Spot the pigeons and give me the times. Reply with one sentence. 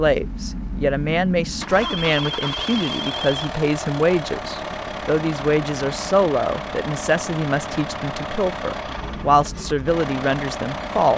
The pigeons can't be heard in this clip.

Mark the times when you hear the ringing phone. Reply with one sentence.
The ringing phone can be heard from 1.8 to 3.4 s.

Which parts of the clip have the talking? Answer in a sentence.
The talking can be heard from 0.0 to 11.1 s.